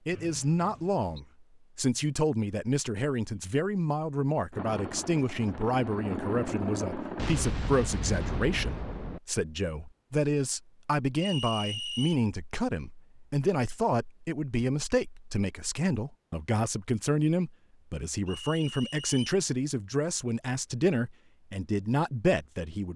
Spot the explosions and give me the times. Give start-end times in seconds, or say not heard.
7.2-9.2.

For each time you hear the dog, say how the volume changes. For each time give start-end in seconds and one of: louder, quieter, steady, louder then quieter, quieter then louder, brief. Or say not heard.
not heard.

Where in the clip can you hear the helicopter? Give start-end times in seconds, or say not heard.
4.5-7.8.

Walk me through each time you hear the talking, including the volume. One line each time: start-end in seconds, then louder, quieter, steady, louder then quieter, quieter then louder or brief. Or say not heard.
0.1-22.9 steady.